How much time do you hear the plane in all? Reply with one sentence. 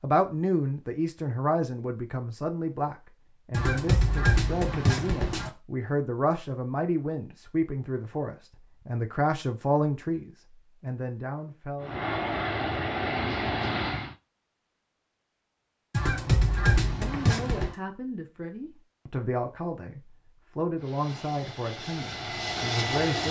You can hear the plane for 5 seconds altogether.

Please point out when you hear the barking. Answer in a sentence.
The barking can't be heard in this clip.